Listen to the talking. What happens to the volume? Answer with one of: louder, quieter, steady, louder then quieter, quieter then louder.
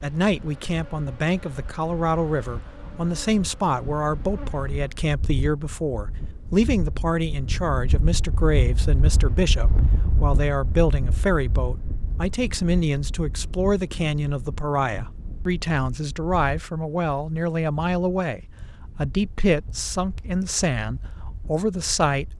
steady.